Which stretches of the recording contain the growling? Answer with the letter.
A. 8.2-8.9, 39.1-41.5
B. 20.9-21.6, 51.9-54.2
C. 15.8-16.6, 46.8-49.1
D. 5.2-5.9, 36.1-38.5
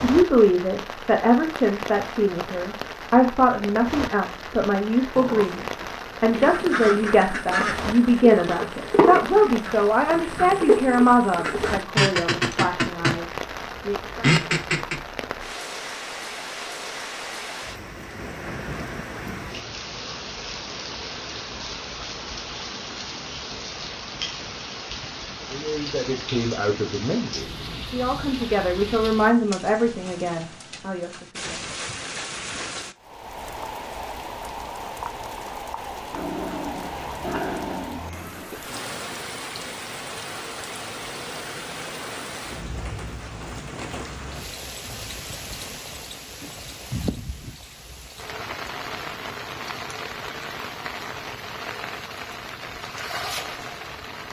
D.